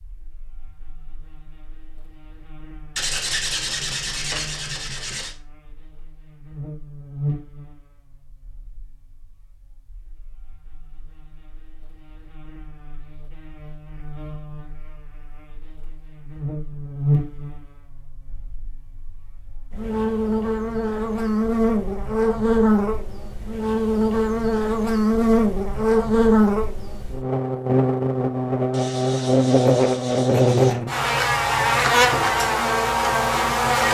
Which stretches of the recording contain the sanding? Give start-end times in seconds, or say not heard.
3.0-5.3, 28.7-30.8.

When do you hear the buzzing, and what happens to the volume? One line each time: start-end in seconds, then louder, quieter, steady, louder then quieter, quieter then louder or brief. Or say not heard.
0.0-33.9 louder.